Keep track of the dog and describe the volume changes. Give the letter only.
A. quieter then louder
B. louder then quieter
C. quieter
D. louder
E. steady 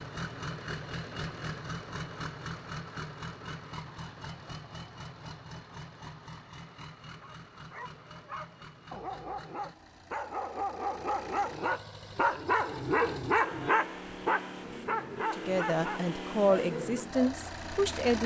B.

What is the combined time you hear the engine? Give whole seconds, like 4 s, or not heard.
18 s.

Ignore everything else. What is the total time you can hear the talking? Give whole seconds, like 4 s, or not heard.
3 s.